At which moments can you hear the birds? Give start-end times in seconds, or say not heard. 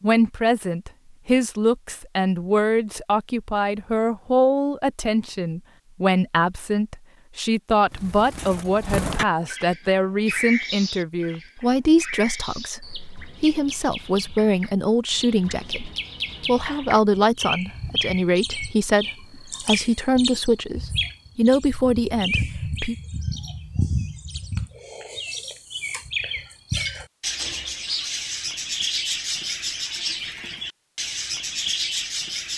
7.9-32.5.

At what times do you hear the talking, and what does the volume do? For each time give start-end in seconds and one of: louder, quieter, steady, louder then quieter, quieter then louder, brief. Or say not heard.
0.0-22.9 steady.